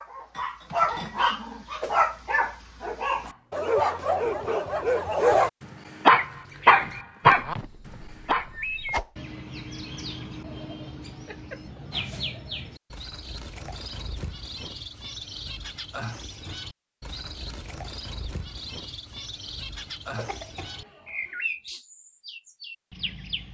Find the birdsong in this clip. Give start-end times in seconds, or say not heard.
6.0-23.5.